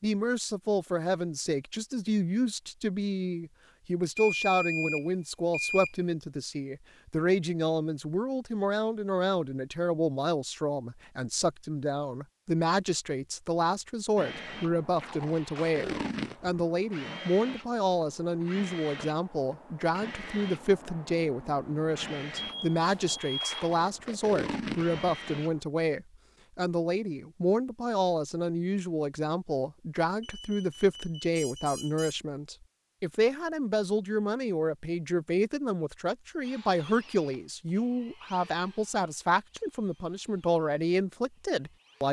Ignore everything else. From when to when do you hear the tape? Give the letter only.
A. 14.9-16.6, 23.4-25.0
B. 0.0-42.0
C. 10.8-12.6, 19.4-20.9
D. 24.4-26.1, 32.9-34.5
A.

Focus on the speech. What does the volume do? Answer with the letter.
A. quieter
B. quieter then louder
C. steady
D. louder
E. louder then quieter
C.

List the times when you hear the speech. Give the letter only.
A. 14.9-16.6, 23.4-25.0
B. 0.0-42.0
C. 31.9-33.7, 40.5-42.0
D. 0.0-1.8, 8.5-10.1
B.